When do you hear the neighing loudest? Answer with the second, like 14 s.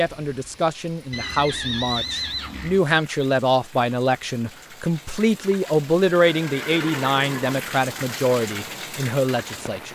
2 s.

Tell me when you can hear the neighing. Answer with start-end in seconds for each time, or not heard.
1.1-2.8, 6.3-7.6.